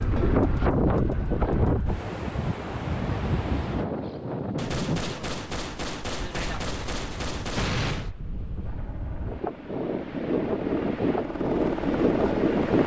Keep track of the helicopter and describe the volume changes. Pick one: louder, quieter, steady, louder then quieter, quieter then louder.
louder.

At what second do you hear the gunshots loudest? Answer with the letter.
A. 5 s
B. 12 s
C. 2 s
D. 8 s
D.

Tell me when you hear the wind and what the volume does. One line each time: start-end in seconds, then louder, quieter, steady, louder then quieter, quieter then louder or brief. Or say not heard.
0.0-12.8 quieter then louder.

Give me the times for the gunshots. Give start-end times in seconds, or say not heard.
4.5-8.1.